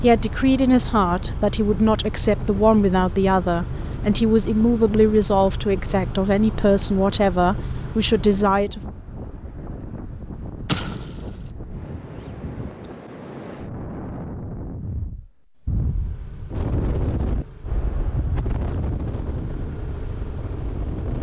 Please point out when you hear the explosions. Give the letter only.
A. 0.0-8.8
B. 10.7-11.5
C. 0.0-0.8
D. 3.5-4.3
B.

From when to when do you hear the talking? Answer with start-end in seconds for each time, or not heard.
0.0-8.8.